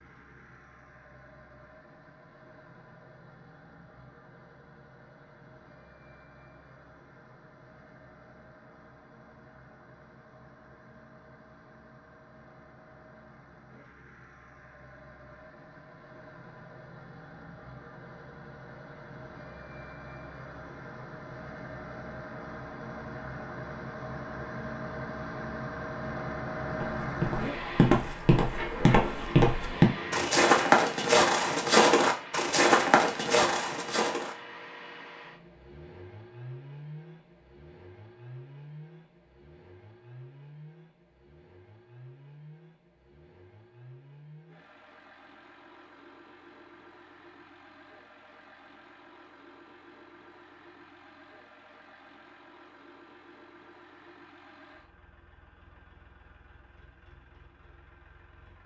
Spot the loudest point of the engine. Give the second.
27 s.